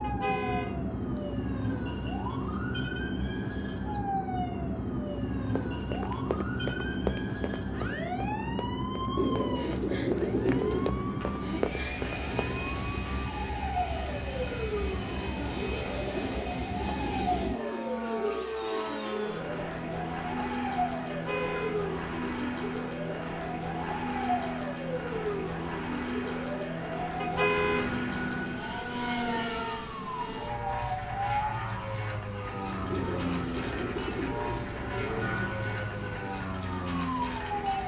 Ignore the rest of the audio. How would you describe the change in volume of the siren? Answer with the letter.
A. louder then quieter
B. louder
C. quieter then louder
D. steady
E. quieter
D.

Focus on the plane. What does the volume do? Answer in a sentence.
The volume of the plane stays about the same.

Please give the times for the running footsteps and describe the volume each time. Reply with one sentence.
The running footsteps can be heard from 5.5 to 12.6 s, getting quieter then louder.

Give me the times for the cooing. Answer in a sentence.
The cooing can be heard from 9.2 to 10.9 s, from 16.1 to 18.5 s and from 32.9 to 35.4 s.